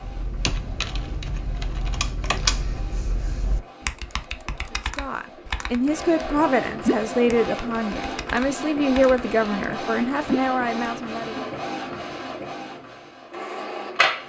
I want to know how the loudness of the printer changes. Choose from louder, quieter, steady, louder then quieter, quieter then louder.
louder.